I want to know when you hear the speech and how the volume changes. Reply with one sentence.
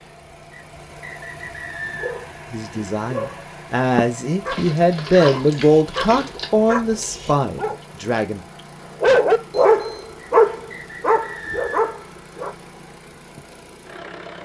The speech can be heard from 2.5 to 8.4 s, getting louder then quieter.